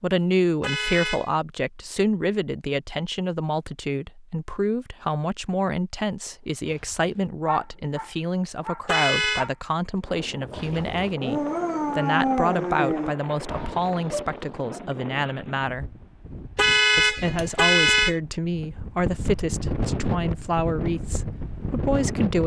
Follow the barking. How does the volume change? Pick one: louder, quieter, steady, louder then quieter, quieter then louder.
louder then quieter.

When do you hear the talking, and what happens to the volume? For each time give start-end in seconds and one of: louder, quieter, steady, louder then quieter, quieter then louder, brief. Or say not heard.
0.0-15.8 steady
16.9-22.4 steady.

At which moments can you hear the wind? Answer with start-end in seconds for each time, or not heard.
10.0-22.4.